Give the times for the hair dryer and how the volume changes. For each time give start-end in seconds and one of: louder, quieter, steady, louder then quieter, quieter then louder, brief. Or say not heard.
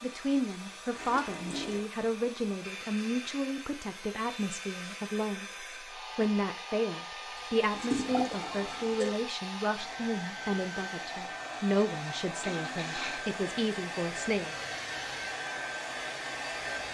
0.0-16.8 louder.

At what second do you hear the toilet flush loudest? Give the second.
8 s.